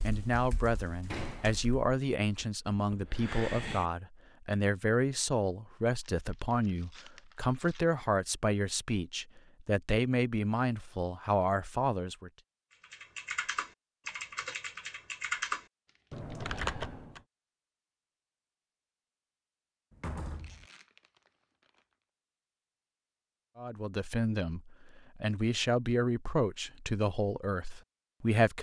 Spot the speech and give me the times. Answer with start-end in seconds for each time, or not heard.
0.0-12.3, 23.6-28.5.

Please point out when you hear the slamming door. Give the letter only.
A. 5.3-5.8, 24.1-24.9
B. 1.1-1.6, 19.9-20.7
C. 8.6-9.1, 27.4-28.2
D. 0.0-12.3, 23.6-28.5
B.